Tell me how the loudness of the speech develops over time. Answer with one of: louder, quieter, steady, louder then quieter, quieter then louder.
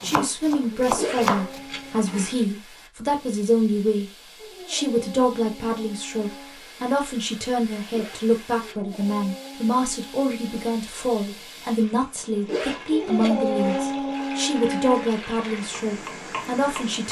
steady.